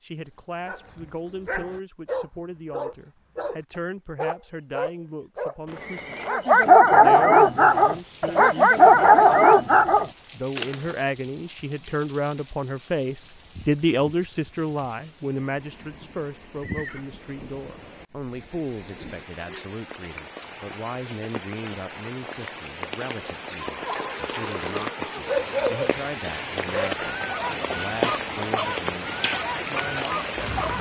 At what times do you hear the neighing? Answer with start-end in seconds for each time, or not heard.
5.7-6.4, 16.6-17.1, 23.8-25.4.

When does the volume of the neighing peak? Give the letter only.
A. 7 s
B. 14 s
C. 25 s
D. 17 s
D.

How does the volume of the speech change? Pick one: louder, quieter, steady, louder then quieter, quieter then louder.
louder then quieter.